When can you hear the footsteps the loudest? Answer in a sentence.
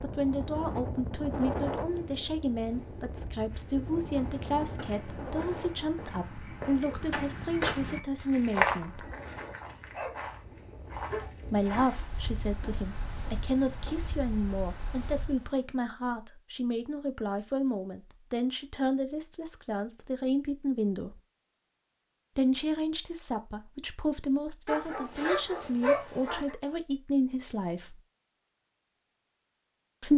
The loudest moment of the footsteps is at 9 seconds.